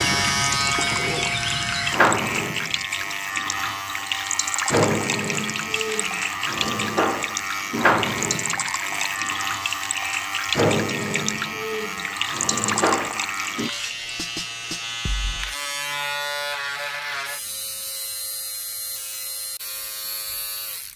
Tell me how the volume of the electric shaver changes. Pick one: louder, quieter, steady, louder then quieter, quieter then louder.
quieter.